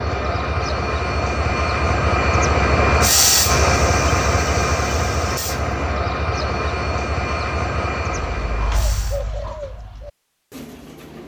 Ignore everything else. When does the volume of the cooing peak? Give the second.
9 s.